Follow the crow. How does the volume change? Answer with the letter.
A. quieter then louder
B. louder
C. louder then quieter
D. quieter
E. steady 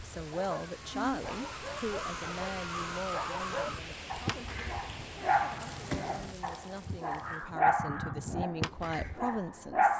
A.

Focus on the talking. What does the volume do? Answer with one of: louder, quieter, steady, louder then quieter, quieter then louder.
quieter then louder.